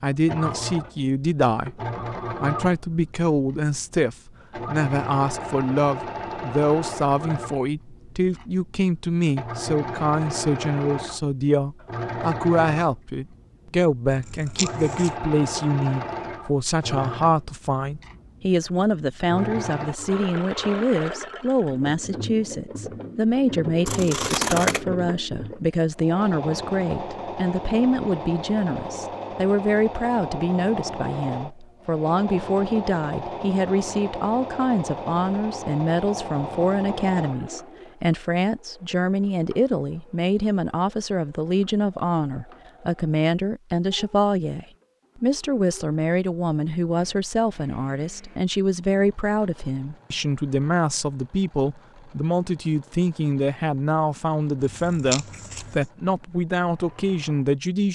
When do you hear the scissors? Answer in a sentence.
You can hear the scissors from 14.1 to 15.2 s, from 23.9 to 24.9 s and from 54.6 to 55.9 s.